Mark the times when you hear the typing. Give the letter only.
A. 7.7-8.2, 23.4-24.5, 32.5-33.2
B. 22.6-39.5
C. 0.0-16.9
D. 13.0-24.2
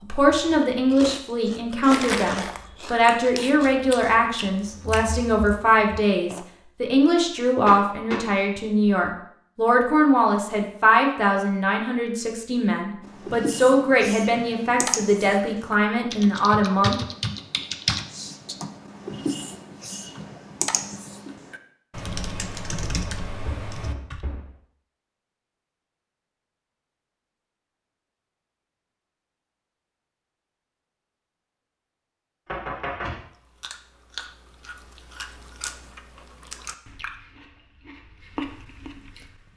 D.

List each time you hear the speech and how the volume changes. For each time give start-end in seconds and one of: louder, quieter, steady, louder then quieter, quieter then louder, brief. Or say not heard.
0.0-16.9 steady.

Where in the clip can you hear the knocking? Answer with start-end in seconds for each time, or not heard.
7.7-8.2, 23.4-24.5, 32.5-33.2.